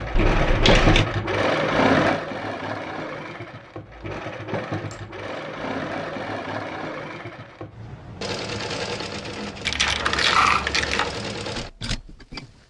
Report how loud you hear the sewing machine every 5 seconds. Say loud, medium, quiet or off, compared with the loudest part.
loud, medium, medium.